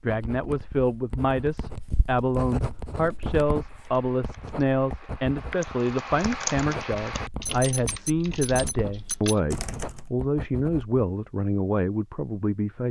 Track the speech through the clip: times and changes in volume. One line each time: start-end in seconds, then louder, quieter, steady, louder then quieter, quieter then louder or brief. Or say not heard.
0.0-12.8 steady.